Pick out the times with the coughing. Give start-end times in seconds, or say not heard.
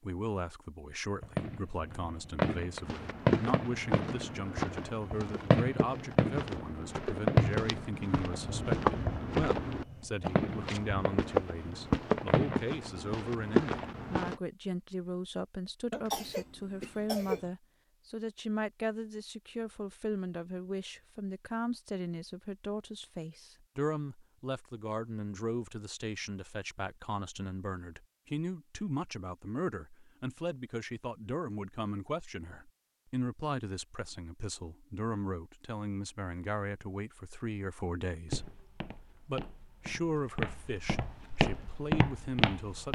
15.9-17.5.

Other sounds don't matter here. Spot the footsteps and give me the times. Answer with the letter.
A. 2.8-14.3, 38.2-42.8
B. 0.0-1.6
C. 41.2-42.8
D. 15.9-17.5
A.